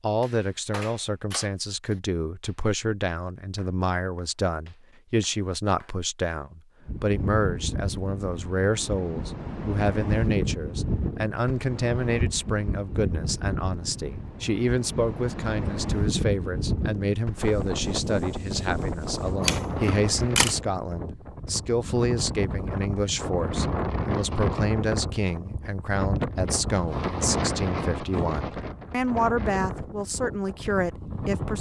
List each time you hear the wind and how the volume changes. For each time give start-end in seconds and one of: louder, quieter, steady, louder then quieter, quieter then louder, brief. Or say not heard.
6.8-31.5 steady.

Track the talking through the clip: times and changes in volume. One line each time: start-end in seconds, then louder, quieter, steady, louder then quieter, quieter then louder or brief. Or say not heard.
0.0-31.5 steady.